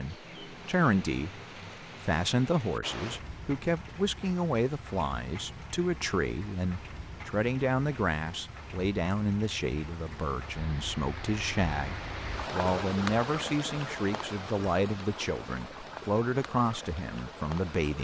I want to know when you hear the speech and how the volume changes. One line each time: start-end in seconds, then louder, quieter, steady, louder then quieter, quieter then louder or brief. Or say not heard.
0.0-1.4 brief
2.0-17.9 steady.